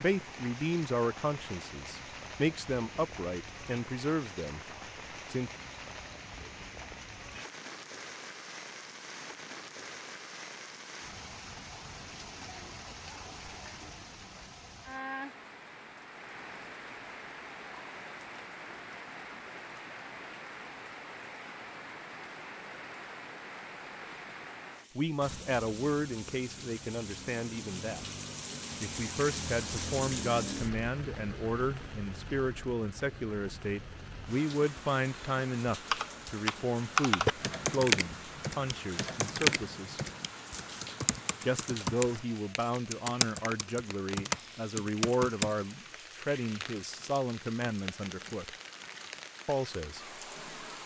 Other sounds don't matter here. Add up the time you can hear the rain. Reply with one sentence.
You can hear the rain for 51 seconds altogether.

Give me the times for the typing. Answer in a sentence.
The typing can be heard from 35.9 to 45.5 s.